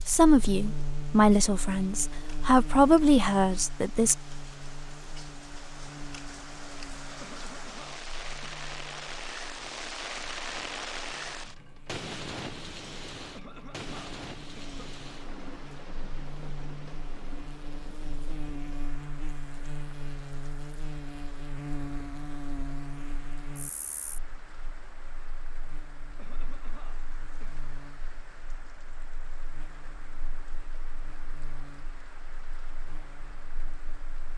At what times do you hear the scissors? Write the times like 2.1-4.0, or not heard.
not heard.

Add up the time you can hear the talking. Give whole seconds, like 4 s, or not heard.
4 s.